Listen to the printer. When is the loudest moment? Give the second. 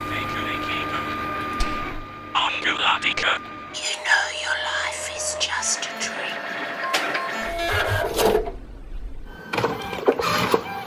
8 s.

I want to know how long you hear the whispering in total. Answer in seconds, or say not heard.
6 s.